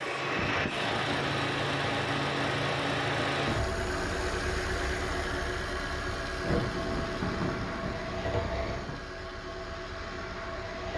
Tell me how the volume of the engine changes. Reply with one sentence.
The loudness of the engine goes down.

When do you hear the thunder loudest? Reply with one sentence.
The loudest moment of the thunder is at 7 seconds.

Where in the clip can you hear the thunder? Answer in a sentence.
The thunder can be heard from 6.4 to 9.1 s.